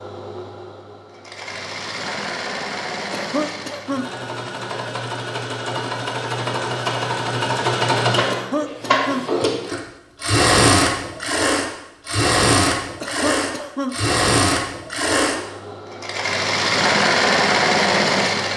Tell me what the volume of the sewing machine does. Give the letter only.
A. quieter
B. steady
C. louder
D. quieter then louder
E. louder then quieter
C.